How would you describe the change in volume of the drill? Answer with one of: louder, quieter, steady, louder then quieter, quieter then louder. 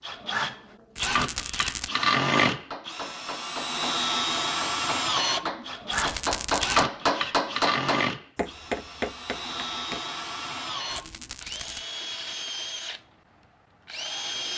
quieter.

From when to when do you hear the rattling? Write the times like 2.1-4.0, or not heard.
0.9-1.9, 5.9-6.8, 10.8-11.8.